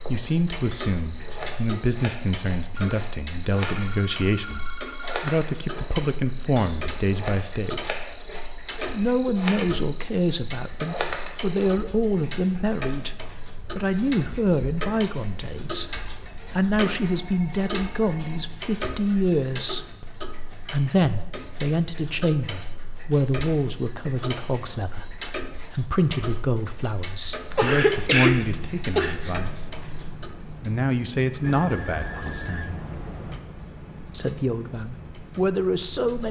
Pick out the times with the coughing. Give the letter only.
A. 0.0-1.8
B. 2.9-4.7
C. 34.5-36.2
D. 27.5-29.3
D.